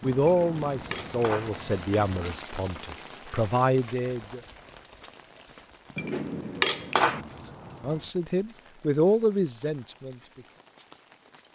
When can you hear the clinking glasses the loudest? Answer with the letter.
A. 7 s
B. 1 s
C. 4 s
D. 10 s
A.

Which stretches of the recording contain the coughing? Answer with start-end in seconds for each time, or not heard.
not heard.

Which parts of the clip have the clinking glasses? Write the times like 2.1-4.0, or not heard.
0.2-1.5, 6.0-7.2.